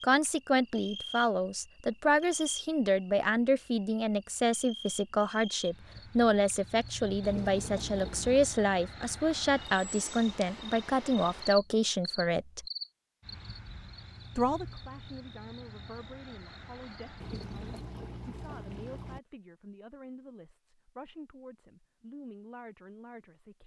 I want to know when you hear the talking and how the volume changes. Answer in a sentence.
You can hear the talking from 0.0 to 12.7 s, at a steady volume; and from 14.3 to 23.6 s, at a steady volume.